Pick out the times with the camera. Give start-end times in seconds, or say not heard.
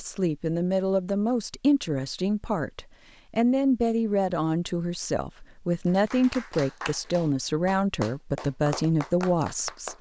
not heard.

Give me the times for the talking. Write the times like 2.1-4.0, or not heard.
0.0-9.9.